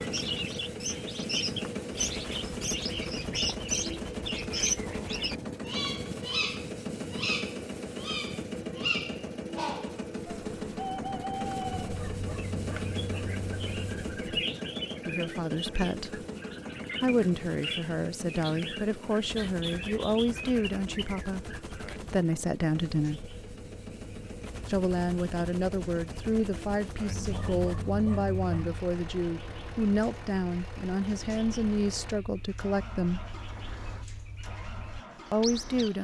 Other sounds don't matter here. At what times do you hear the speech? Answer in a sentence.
The speech can be heard from 15.1 to 16.2 s, from 17.0 to 23.2 s, from 24.6 to 33.2 s and from 35.3 to 35.9 s.